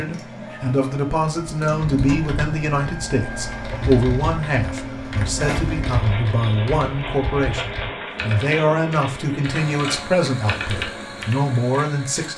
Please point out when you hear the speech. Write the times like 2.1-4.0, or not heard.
0.0-12.3.